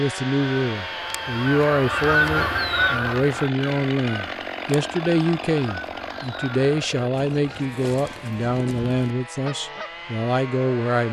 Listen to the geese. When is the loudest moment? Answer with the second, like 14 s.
2 s.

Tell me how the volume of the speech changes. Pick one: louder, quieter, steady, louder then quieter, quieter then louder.
steady.